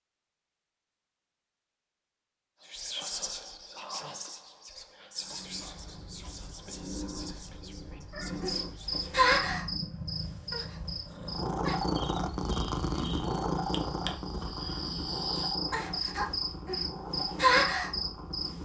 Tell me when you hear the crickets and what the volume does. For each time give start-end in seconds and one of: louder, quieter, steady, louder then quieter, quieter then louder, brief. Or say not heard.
8.2-18.6 quieter then louder.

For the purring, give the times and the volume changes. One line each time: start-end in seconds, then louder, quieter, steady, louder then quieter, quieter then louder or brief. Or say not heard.
5.2-18.6 louder then quieter.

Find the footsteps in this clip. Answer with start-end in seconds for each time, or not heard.
not heard.